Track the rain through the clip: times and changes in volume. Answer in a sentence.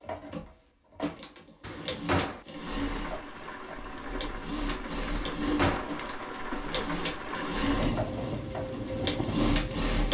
You can hear the rain from 2.5 to 10.0 s, getting louder.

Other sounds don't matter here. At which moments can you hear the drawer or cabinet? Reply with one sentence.
The drawer or cabinet can be heard from 1.6 to 2.5 s and from 5.2 to 6.0 s.